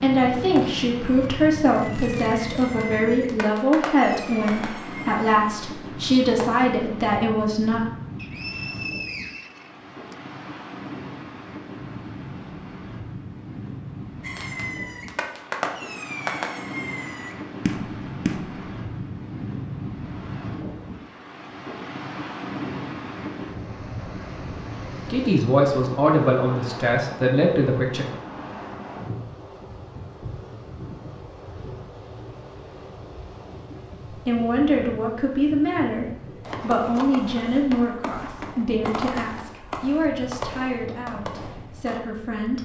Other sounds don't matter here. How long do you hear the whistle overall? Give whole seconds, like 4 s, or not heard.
2 s.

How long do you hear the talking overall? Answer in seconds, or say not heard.
19 s.